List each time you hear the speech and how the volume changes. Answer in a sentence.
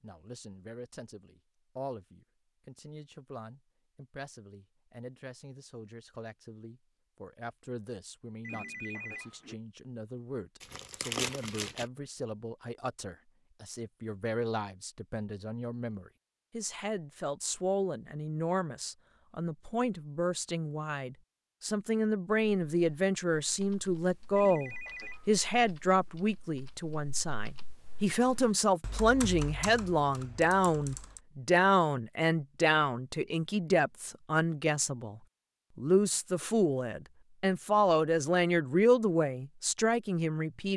You can hear the speech from 0.0 to 40.7 s, getting louder.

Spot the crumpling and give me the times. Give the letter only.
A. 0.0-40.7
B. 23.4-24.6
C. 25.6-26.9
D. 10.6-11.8
D.